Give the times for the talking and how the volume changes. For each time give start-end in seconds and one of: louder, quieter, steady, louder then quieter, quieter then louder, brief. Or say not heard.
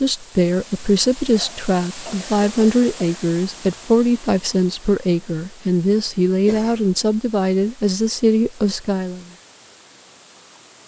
0.0-9.2 steady.